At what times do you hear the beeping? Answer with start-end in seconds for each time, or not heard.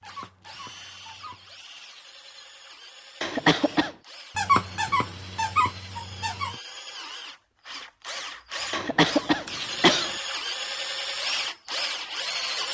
not heard.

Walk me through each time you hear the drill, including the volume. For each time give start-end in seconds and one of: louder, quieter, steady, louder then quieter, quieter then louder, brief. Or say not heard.
0.0-12.6 louder.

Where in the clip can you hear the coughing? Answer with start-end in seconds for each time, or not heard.
3.2-4.0, 8.7-10.2.